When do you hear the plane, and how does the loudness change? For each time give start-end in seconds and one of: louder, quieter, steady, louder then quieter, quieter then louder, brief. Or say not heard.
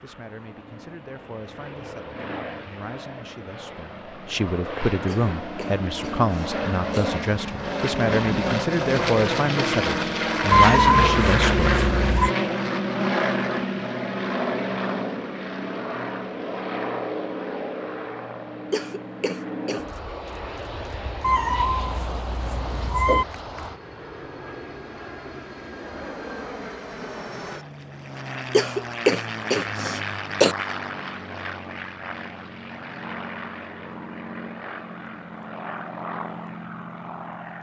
0.1-37.5 louder then quieter.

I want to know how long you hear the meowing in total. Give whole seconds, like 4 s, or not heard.
4 s.